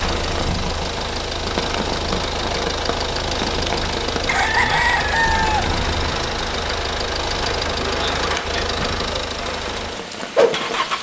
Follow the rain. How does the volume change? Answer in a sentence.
The loudness of the rain stays about the same.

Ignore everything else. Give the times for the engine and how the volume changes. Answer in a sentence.
The engine can be heard from 0.0 to 10.9 s, at a steady volume.